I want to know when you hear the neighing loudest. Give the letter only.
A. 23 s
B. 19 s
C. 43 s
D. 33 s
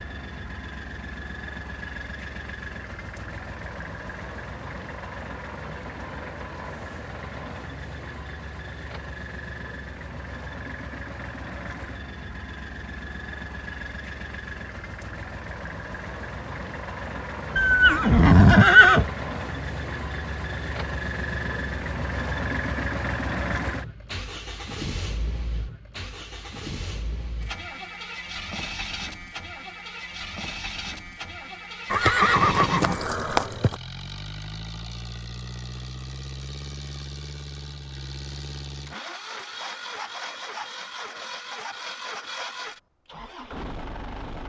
B.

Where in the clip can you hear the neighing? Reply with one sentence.
You can hear the neighing from 17.6 to 19.1 s and from 31.9 to 33.8 s.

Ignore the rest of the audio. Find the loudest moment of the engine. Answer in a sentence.
The loudest moment of the engine is at 23 seconds.